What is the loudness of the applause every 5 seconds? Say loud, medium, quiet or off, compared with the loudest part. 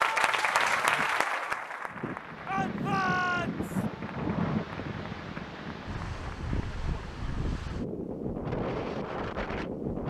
loud, quiet.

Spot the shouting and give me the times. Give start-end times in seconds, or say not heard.
2.5-3.9.